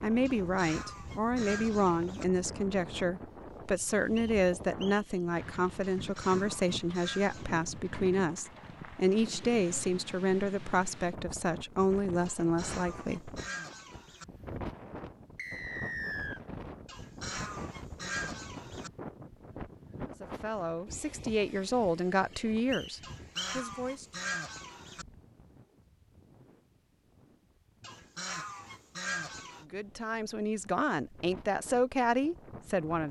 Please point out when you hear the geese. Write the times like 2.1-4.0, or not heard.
0.2-2.2, 6.0-7.5, 12.2-14.2, 16.9-18.9, 23.0-25.1, 27.8-29.6.